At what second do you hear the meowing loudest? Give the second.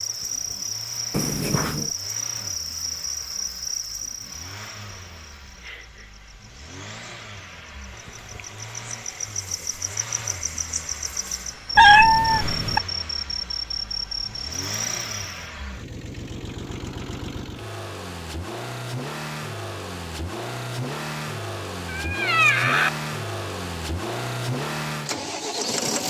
12 s.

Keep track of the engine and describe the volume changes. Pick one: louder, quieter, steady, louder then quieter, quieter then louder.
louder.